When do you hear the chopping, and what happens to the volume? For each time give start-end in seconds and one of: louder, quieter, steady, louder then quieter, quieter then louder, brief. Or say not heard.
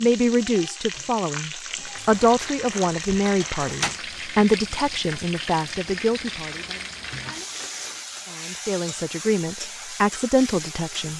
not heard.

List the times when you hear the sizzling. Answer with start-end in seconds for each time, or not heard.
0.0-11.1.